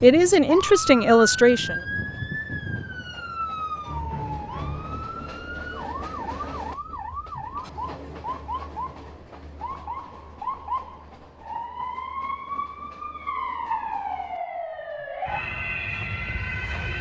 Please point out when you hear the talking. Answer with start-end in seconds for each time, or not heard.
0.0-1.8.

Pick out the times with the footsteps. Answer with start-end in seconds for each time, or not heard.
not heard.